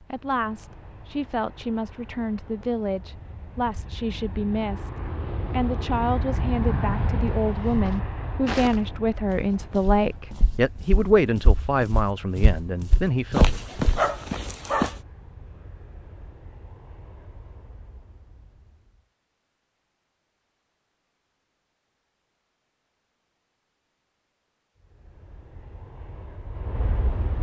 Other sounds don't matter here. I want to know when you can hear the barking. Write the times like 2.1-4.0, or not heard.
13.3-15.0.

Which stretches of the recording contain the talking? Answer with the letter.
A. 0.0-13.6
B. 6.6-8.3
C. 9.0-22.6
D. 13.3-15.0
A.